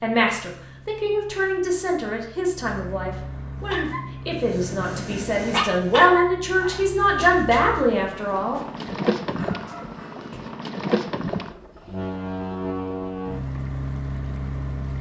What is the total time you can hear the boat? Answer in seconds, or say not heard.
15 s.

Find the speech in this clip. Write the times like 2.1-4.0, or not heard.
0.0-8.6.